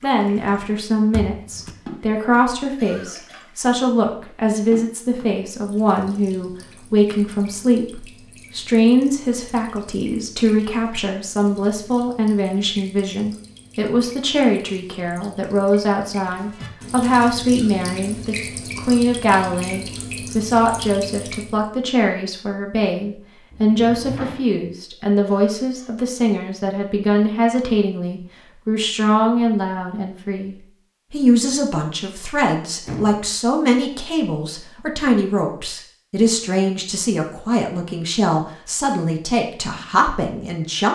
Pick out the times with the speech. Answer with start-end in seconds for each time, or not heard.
0.0-40.9.